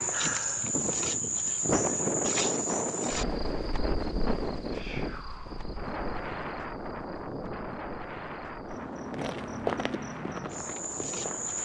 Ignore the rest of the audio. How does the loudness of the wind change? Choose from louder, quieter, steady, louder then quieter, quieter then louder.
quieter.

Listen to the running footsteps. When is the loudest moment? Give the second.
10 s.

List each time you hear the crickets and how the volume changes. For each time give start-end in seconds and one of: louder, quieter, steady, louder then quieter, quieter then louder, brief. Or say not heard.
0.0-11.5 quieter then louder.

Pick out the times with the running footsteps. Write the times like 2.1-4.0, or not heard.
9.1-11.5.